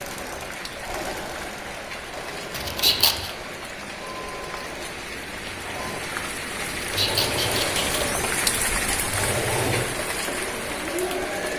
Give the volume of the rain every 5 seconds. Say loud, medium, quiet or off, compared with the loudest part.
medium, loud, loud.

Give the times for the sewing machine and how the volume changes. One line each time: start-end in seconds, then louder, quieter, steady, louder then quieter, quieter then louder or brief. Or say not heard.
0.0-11.5 louder.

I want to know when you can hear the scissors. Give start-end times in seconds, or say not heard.
2.5-3.3, 6.7-8.2.